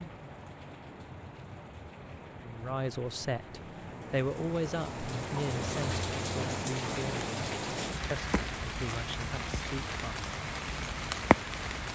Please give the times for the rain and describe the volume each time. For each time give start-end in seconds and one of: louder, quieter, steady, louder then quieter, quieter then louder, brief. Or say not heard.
0.0-11.8 louder.